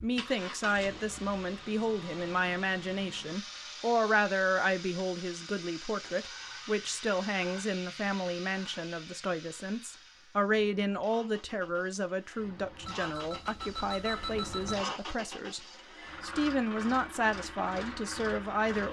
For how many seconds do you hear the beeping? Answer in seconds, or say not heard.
2 s.